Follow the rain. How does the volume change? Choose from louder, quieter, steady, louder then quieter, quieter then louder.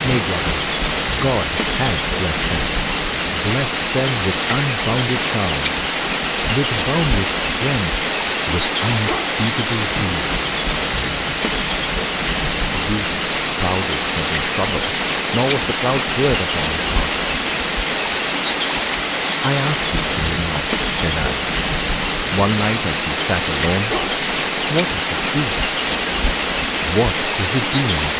steady.